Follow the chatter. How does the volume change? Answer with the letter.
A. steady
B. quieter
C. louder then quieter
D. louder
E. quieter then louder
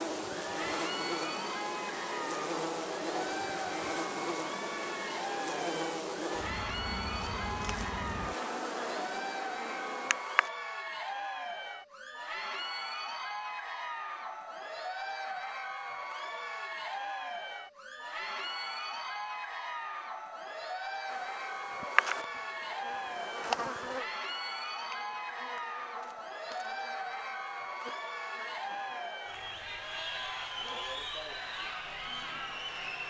A.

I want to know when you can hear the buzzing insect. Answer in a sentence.
You can hear the buzzing insect from 0.0 to 10.5 s and from 21.1 to 33.0 s.